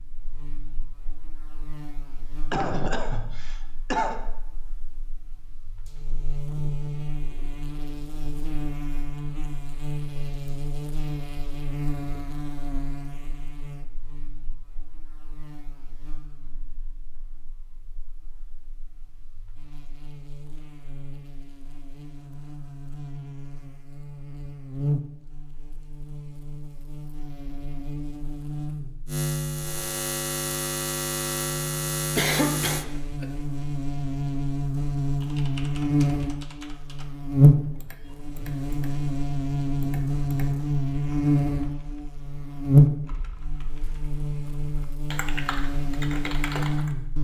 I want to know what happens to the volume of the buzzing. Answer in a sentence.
The volume of the buzzing goes up.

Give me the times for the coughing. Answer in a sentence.
The coughing can be heard from 2.5 to 4.2 s and from 32.1 to 33.2 s.